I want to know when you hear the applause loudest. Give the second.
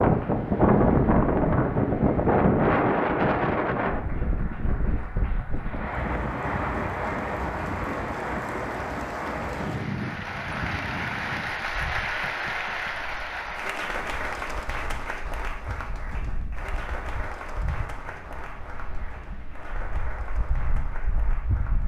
12 s.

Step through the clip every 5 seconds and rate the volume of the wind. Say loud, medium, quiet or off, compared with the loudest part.
loud, medium, quiet, quiet, quiet.